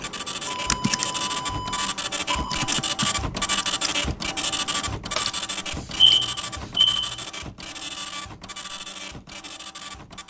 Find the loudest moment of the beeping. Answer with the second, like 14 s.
6 s.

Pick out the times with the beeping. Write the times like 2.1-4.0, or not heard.
0.5-2.7, 5.8-7.2.